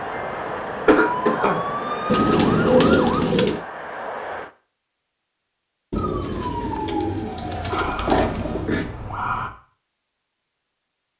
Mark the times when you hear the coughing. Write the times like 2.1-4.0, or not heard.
0.3-1.6, 8.1-8.8.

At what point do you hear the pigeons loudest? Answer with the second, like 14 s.
3 s.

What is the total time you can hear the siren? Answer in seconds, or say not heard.
7 s.